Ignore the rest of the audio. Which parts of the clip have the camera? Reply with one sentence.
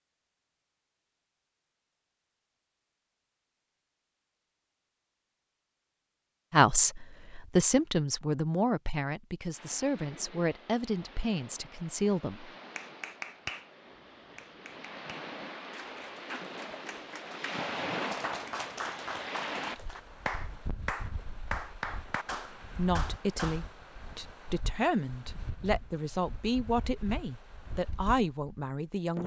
The camera can't be heard in this clip.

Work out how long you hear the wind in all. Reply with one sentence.
The wind can be heard for 20 seconds in total.